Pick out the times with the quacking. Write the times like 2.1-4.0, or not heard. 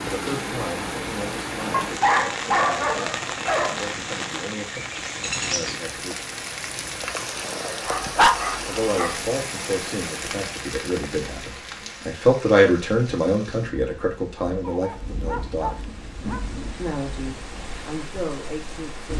not heard.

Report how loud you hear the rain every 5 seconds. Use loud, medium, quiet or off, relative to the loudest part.
loud, loud, medium, medium.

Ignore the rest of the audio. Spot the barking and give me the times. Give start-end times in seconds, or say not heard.
1.7-3.8, 7.8-9.2, 14.6-16.4.